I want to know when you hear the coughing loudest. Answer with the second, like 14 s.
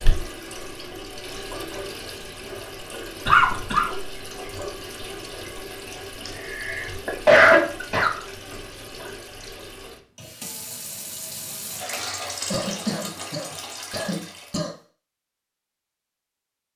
7 s.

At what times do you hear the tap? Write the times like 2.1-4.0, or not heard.
0.0-14.6.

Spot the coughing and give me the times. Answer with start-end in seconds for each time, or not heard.
3.2-3.9, 6.2-8.2, 12.5-14.7.